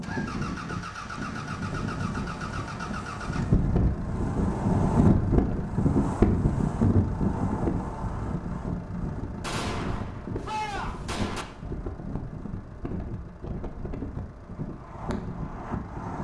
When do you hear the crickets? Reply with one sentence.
You can't hear the crickets here.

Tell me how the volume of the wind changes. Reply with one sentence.
The volume of the wind goes up, then down.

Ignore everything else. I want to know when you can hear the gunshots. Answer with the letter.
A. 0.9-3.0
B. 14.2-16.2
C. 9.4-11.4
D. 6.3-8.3
C.